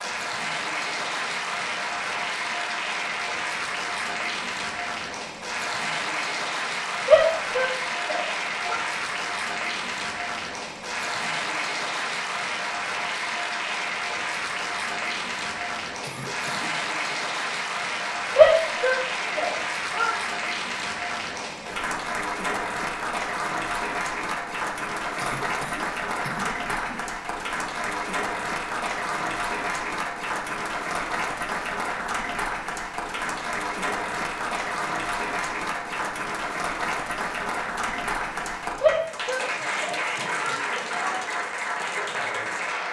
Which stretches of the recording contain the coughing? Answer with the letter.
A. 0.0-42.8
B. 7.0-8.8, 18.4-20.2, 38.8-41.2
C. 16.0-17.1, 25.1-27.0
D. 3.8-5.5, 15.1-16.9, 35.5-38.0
C.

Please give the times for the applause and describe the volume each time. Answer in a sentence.
You can hear the applause from 0.0 to 42.8 s, at a steady volume.